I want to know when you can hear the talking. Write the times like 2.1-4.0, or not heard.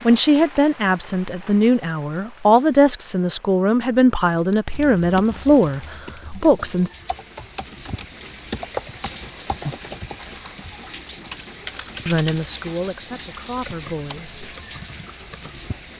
0.1-6.9, 12.1-14.4.